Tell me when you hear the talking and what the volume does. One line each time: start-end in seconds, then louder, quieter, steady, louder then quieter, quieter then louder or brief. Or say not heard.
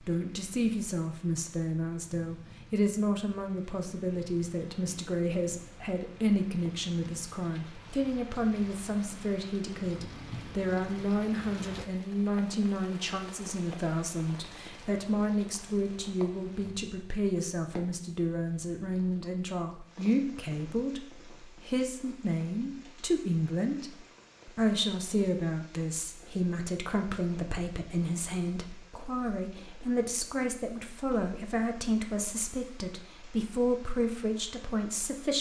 0.1-35.3 steady.